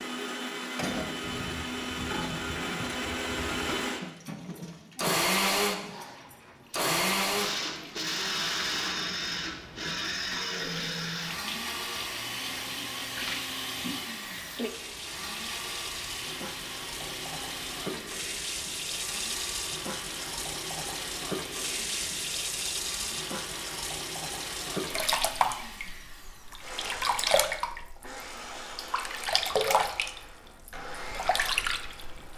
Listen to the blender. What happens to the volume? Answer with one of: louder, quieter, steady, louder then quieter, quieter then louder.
quieter.